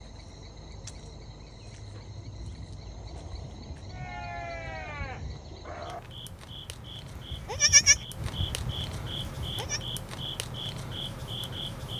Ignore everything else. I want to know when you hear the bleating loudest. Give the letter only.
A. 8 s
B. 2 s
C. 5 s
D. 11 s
A.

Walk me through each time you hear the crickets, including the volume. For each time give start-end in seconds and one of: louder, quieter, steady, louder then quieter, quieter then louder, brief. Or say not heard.
0.0-11.9 louder.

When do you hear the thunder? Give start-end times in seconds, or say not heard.
2.0-5.4.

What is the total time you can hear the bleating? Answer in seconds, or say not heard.
6 s.